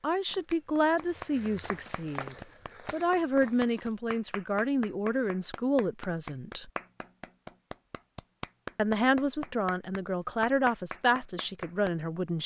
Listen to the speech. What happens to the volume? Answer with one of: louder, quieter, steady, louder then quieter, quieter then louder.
steady.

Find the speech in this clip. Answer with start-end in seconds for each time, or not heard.
0.0-6.7, 8.8-12.4.